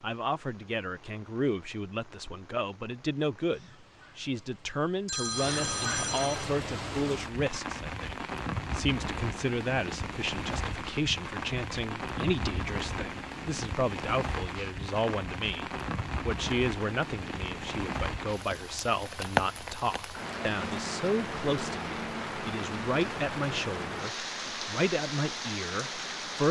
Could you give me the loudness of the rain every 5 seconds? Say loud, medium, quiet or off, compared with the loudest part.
quiet, loud, loud, loud, loud, loud.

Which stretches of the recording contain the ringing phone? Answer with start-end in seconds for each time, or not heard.
5.0-6.5.